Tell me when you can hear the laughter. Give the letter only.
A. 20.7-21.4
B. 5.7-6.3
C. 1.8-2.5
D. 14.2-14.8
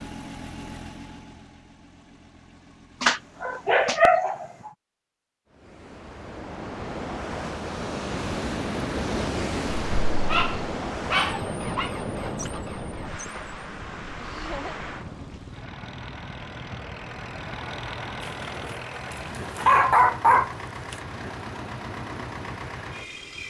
D.